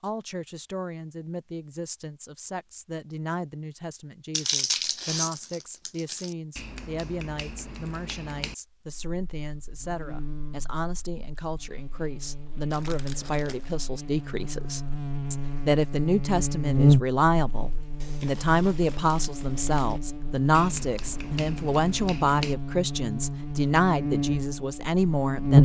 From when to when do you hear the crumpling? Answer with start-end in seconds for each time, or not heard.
4.3-6.3, 12.7-13.8, 18.0-20.0.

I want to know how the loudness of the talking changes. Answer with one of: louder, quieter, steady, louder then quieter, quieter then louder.
louder.